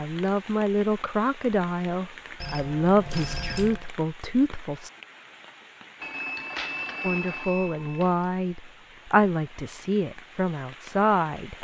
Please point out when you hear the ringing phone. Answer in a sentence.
You can hear the ringing phone from 2.4 to 3.9 s and from 6.0 to 8.3 s.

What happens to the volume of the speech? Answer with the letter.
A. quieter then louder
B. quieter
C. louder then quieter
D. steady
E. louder
D.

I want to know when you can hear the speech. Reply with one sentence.
You can hear the speech from 0.0 to 4.9 s and from 7.0 to 11.5 s.